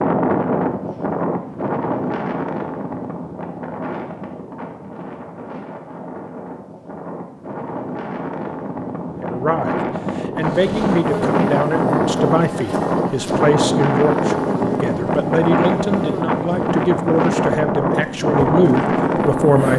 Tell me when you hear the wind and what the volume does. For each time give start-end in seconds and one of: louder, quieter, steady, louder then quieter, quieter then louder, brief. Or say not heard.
0.0-19.7 quieter then louder.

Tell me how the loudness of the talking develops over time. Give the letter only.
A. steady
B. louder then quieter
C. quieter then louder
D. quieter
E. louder
A.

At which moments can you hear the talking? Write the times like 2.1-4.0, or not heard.
9.2-19.7.